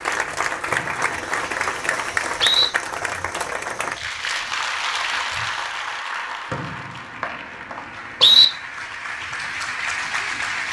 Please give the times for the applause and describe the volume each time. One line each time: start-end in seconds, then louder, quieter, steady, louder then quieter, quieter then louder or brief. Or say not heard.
0.0-10.6 quieter then louder.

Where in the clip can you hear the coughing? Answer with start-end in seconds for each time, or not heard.
not heard.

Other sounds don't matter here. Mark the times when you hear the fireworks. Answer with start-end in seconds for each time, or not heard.
not heard.